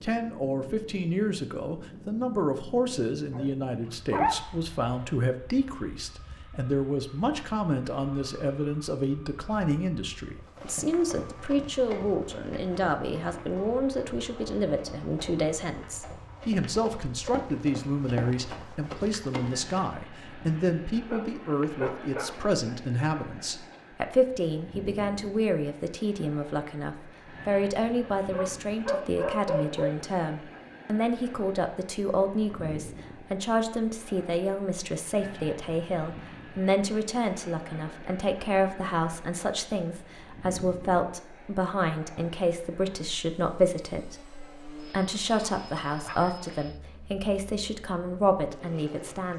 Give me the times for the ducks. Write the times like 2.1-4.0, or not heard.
not heard.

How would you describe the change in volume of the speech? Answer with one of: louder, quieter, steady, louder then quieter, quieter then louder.
steady.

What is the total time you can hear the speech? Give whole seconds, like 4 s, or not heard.
49 s.